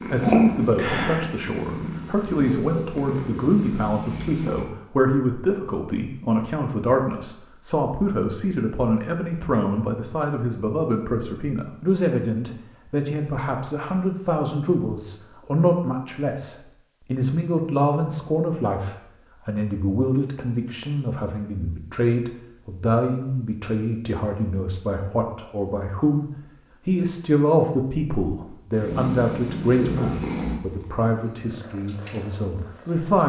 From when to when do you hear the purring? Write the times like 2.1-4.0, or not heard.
0.0-4.7, 28.7-33.2.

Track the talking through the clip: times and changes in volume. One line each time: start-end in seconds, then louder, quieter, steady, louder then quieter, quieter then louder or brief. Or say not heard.
0.0-33.2 steady.